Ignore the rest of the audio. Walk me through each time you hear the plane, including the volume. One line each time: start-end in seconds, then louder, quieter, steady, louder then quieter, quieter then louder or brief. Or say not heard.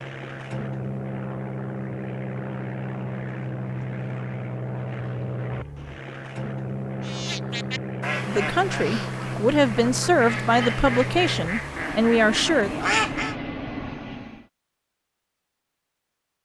0.0-14.4 steady.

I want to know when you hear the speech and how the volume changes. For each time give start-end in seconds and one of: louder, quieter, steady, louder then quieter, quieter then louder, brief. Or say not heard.
8.2-12.7 louder.